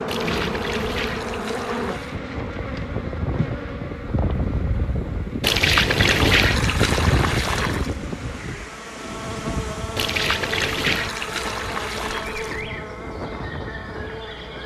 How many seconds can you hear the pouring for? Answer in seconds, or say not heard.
7 s.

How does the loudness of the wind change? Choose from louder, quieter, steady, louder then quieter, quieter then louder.
louder then quieter.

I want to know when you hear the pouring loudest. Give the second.
6 s.